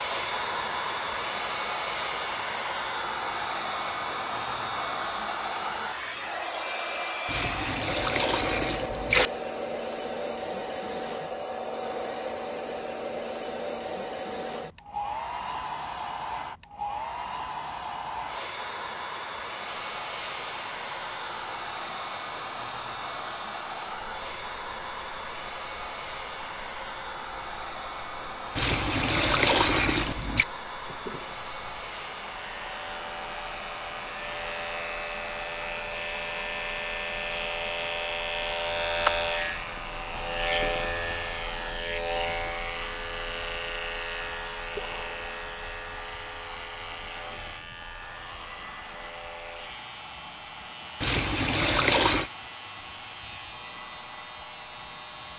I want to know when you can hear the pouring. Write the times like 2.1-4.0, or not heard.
7.2-9.3, 28.6-30.4, 51.0-52.3.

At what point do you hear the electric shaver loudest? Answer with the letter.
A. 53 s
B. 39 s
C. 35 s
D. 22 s
B.